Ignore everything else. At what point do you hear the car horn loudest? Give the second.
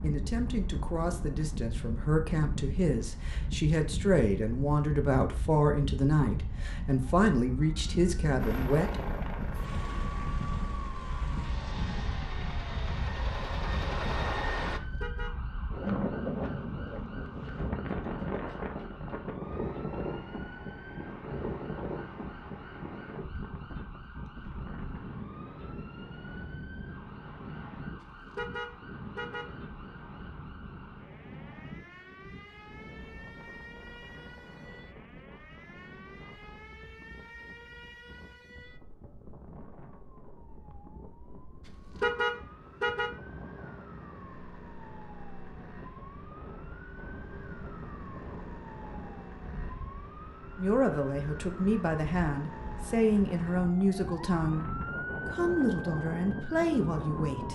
42 s.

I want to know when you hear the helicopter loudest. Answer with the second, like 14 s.
14 s.